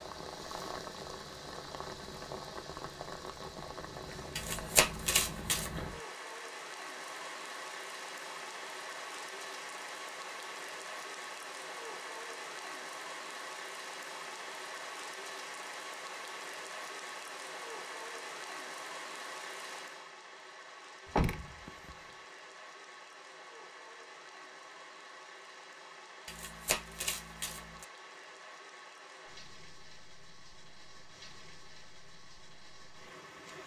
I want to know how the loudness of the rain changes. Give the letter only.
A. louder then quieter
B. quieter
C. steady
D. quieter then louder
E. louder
B.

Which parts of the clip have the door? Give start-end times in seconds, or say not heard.
21.1-21.9.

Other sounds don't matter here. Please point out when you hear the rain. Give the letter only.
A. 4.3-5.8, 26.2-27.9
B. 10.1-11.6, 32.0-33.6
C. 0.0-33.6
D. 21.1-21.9
C.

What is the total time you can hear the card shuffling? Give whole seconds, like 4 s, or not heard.
3 s.